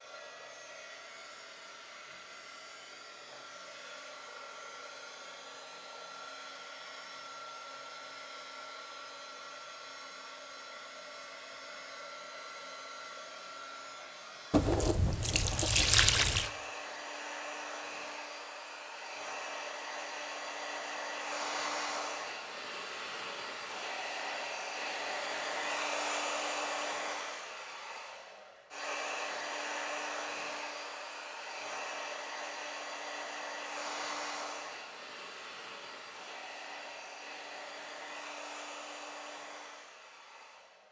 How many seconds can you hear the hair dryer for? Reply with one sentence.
The hair dryer can be heard for 41 seconds in total.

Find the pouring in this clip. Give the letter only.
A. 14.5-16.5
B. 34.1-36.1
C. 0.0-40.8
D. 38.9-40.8
A.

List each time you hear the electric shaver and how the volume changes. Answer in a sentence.
The electric shaver can't be heard in this clip.